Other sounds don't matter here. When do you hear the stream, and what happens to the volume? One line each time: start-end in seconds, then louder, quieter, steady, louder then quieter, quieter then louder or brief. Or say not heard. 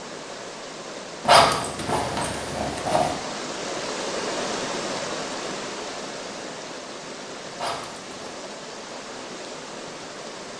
0.0-10.5 louder then quieter.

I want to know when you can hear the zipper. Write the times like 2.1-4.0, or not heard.
1.2-3.1, 7.5-8.3.